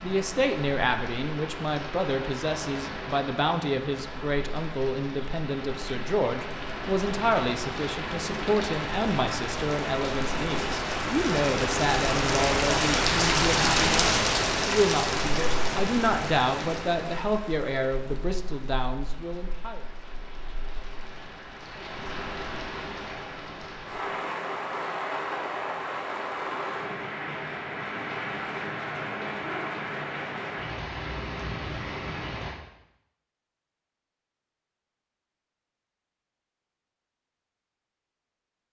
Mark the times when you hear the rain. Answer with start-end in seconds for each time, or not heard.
0.0-32.6.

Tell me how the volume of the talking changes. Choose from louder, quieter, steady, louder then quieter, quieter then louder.
steady.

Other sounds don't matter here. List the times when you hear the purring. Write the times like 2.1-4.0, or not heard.
not heard.